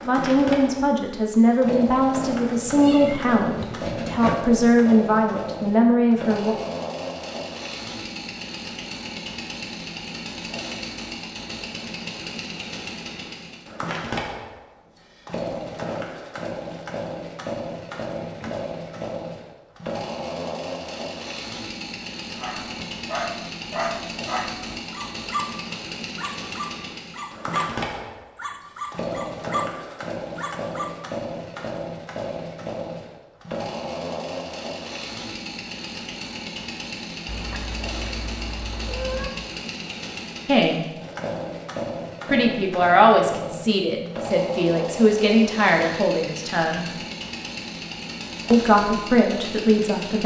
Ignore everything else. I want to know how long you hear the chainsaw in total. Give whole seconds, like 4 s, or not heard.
50 s.